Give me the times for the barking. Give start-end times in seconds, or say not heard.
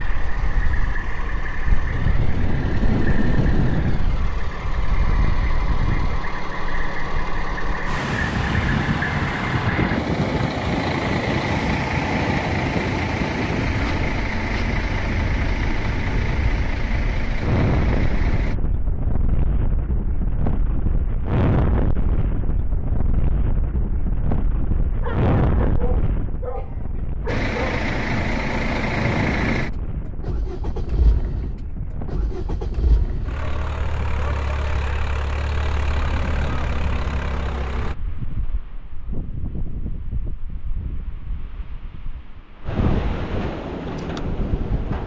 25.0-27.9.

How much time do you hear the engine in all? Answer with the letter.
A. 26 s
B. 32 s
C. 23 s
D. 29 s
D.